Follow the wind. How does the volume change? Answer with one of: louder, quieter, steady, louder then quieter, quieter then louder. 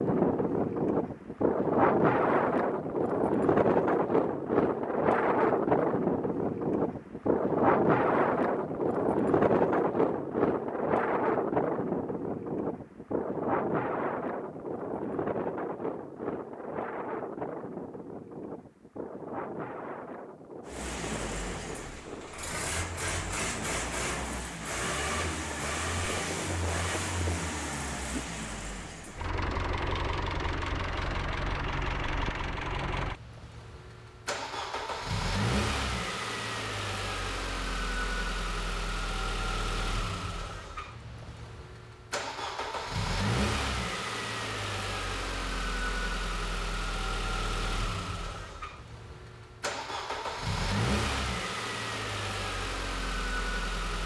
quieter.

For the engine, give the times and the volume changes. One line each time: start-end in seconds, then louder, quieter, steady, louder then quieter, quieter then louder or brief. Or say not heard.
20.6-54.0 steady.